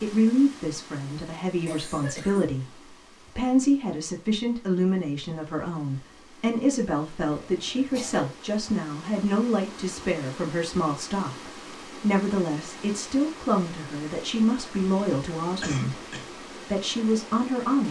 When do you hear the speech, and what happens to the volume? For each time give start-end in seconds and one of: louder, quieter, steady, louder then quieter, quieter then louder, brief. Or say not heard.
0.0-17.8 steady.